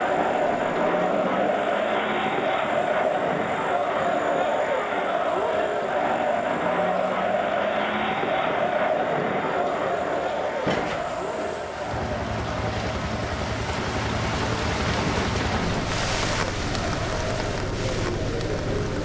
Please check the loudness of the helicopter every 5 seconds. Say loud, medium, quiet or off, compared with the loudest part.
loud, medium, loud, loud.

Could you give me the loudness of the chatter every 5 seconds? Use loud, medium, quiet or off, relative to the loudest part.
loud, loud, medium, medium.